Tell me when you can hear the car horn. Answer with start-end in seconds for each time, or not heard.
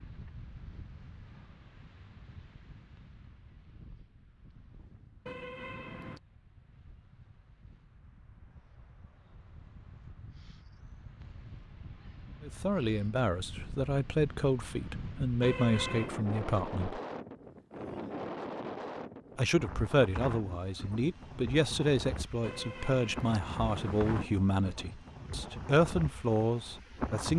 5.2-6.2, 15.4-16.1, 22.4-24.2.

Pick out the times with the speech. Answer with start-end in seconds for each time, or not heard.
12.4-17.0, 19.4-27.3.